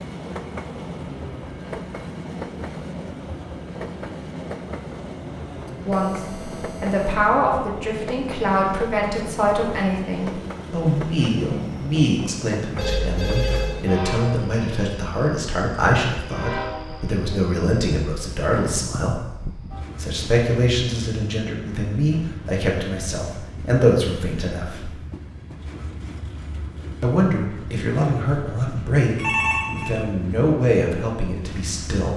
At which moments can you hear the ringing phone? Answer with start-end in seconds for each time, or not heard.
5.7-7.0, 12.8-13.8, 29.1-29.9.